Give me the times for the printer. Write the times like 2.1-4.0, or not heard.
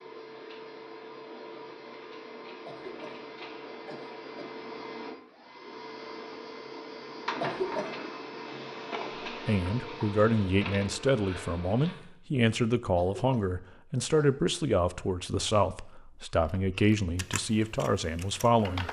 0.0-12.1.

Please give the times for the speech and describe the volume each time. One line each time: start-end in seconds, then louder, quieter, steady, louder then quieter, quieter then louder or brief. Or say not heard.
9.2-18.8 steady.